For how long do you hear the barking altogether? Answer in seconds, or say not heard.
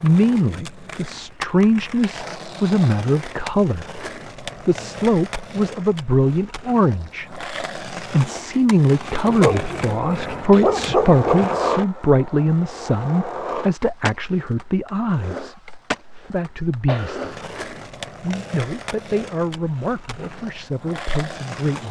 2 s.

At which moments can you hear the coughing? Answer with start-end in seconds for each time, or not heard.
16.9-17.4.